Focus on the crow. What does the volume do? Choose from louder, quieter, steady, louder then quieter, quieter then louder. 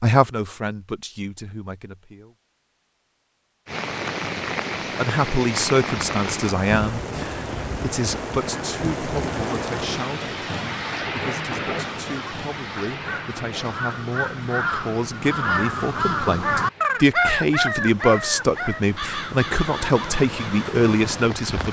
louder then quieter.